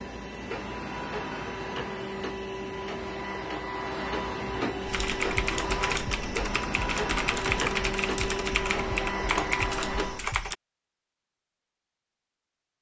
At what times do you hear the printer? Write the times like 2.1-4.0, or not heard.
0.0-10.3.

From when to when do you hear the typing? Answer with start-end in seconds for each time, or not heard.
4.8-10.6.